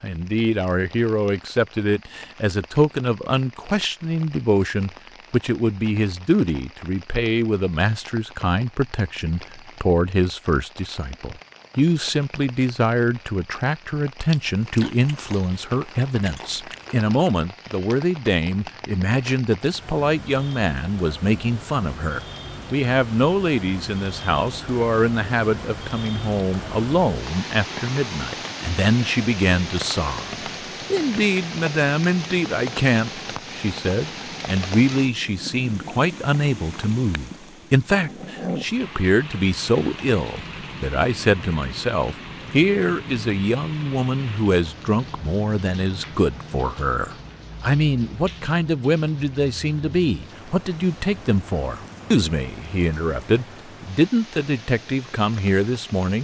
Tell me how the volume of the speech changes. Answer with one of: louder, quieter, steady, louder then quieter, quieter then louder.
steady.